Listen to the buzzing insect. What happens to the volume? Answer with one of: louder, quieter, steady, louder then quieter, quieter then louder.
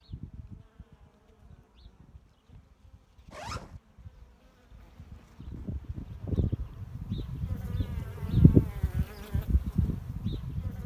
louder.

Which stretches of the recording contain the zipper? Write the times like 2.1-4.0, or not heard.
3.3-3.8.